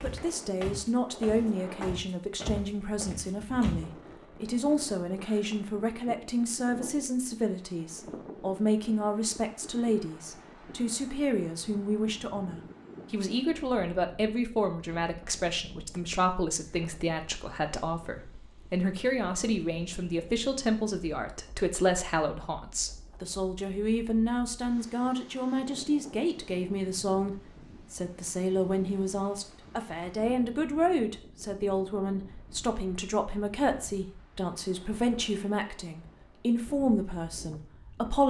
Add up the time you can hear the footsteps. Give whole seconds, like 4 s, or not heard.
4 s.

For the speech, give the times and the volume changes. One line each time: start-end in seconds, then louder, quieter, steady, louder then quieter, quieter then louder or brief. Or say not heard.
0.0-38.2 steady.